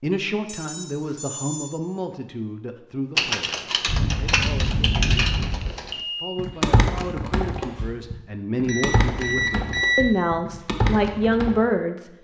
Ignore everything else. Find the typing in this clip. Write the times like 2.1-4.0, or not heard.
3.1-11.6.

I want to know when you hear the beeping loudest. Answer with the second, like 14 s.
10 s.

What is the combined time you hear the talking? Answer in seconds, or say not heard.
12 s.